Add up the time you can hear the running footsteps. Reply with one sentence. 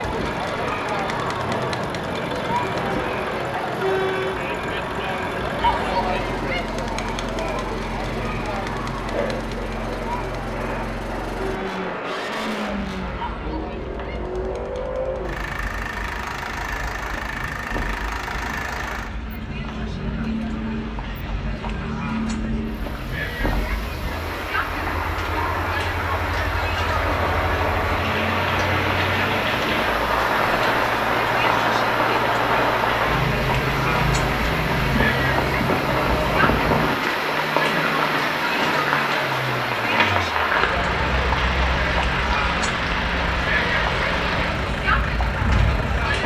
The running footsteps can't be heard in this clip.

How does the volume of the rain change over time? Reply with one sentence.
The loudness of the rain goes up.